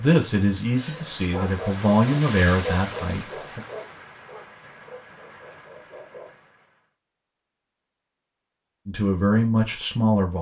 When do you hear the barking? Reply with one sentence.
The barking can be heard from 0.7 to 6.3 s.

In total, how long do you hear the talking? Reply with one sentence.
The talking can be heard for 5 seconds in total.